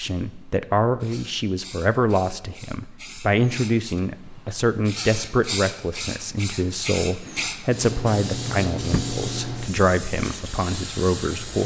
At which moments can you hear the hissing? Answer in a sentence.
The hissing can be heard from 0.0 to 11.6 s.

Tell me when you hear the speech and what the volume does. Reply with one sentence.
The speech can be heard from 0.0 to 11.6 s, at a steady volume.